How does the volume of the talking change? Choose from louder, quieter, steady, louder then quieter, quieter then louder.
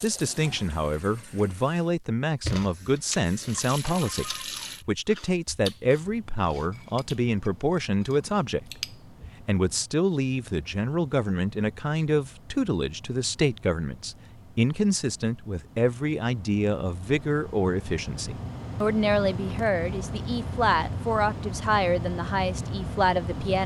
steady.